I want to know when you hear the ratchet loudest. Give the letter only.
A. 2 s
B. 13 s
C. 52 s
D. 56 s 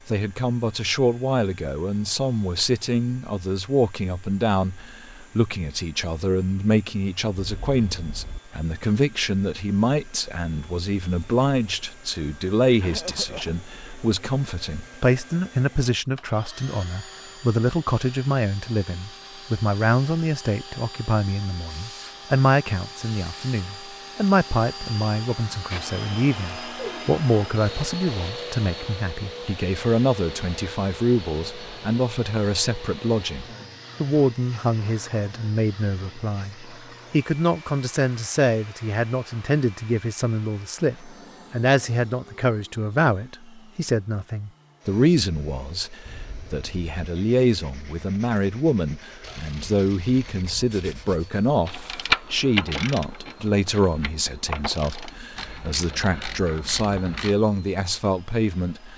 C.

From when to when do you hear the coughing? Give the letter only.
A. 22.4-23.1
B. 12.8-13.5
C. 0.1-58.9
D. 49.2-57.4
B.